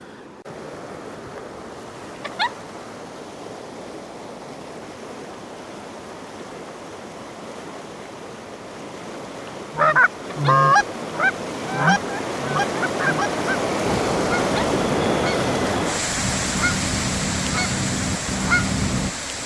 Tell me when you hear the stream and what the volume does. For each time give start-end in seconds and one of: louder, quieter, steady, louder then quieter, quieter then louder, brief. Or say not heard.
0.0-19.4 louder.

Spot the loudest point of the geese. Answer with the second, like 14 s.
11 s.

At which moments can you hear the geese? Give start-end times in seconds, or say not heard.
9.8-19.1.